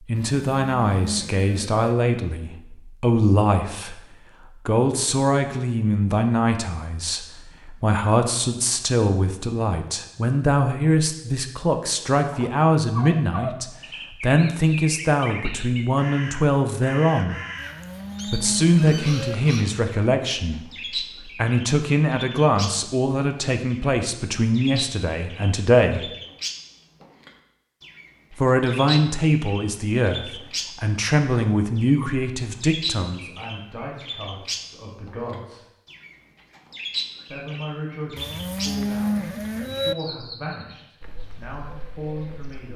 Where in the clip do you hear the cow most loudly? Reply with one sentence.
The loudest moment of the cow is at 39 seconds.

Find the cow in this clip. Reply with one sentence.
You can hear the cow from 0.1 to 1.8 s, from 17.6 to 19.4 s and from 38.1 to 40.0 s.